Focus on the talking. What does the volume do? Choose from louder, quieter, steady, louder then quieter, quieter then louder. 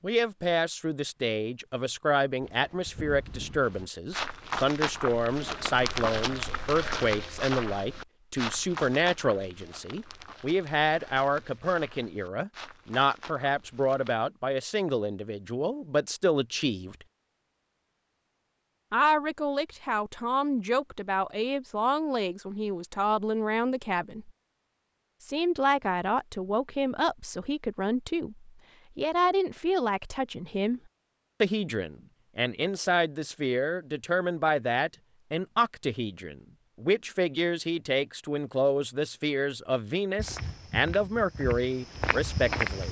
steady.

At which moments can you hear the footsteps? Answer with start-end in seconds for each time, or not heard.
2.4-14.2, 40.1-42.8.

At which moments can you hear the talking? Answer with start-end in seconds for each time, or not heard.
0.0-16.9, 18.9-24.3, 25.2-30.8, 31.4-42.8.